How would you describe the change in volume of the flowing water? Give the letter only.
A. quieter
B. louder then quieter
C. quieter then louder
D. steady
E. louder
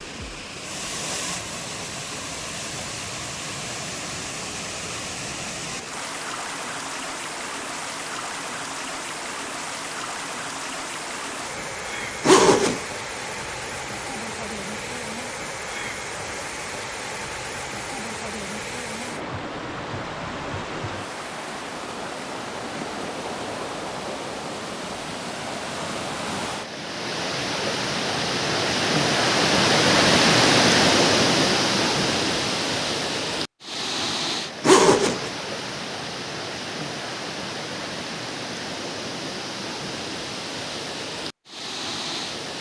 B.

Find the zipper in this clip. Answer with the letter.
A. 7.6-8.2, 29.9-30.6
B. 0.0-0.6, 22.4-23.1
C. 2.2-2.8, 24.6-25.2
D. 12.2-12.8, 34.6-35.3
D.